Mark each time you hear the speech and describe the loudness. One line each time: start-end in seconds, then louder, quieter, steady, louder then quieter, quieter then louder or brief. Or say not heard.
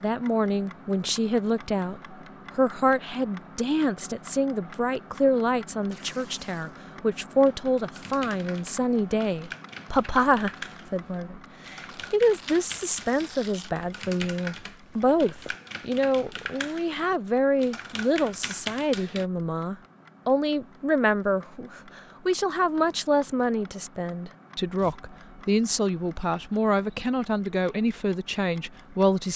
0.0-29.3 steady.